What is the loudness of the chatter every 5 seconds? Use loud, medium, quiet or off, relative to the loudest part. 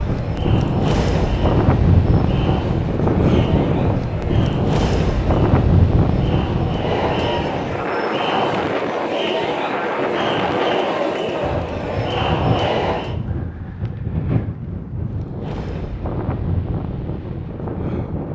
medium, loud, loud, off.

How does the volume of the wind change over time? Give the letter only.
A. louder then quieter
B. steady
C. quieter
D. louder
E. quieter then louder
C.